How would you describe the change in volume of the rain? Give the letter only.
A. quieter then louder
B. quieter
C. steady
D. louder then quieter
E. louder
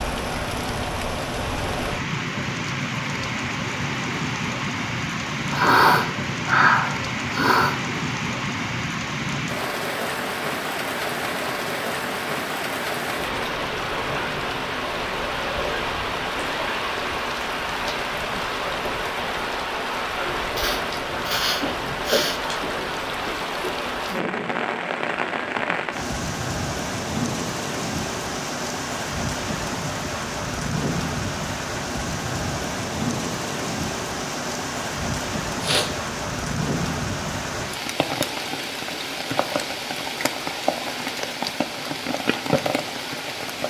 C.